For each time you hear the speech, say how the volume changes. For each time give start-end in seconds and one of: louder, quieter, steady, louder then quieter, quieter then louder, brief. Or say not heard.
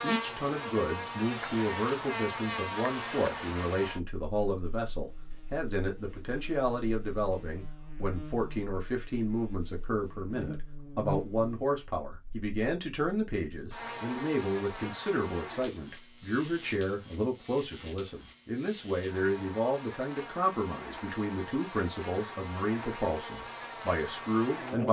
0.0-24.8 steady.